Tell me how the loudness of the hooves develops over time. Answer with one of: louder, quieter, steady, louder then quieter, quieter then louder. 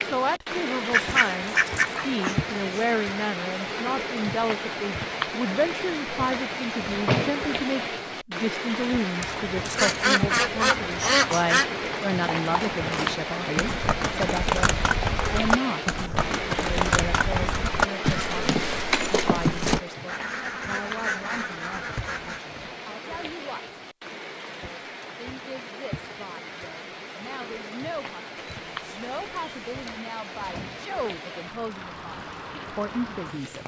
louder.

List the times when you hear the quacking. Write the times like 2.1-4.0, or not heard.
0.9-2.9, 9.2-11.7, 20.1-22.4, 28.4-29.8.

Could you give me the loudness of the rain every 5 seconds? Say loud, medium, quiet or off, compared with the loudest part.
loud, loud, loud, loud, medium, medium, medium.